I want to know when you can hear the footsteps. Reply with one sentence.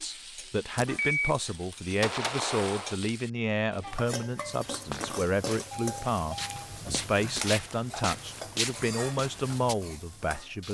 You can hear the footsteps from 4.7 to 9.8 s.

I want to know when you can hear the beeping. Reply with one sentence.
You can hear the beeping from 0.9 to 3.0 s and from 5.7 to 7.5 s.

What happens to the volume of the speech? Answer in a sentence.
The loudness of the speech stays about the same.